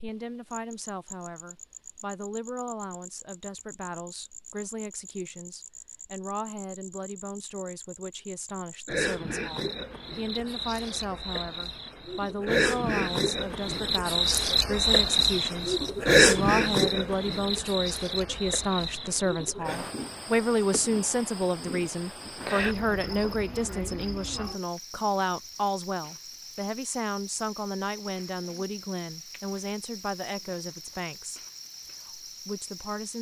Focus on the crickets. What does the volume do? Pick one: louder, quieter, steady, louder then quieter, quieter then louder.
louder then quieter.